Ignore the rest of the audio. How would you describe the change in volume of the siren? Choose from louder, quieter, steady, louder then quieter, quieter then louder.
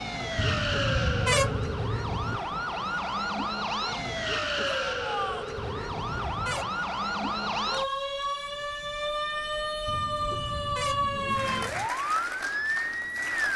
steady.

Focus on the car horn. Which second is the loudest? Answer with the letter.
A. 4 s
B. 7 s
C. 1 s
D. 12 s
C.